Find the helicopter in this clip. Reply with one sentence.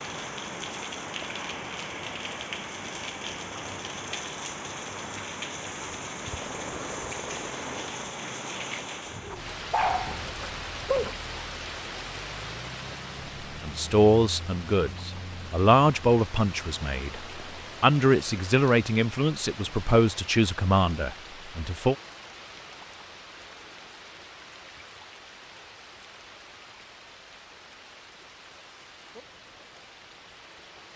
You can hear the helicopter from 6.2 to 8.0 s.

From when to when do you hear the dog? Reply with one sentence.
You can hear the dog from 9.3 to 11.2 s.